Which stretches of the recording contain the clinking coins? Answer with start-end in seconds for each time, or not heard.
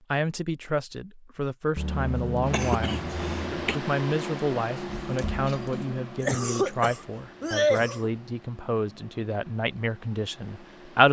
not heard.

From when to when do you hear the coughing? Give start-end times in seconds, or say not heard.
1.8-3.8, 6.2-8.1.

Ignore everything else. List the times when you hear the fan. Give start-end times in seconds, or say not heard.
2.5-11.0.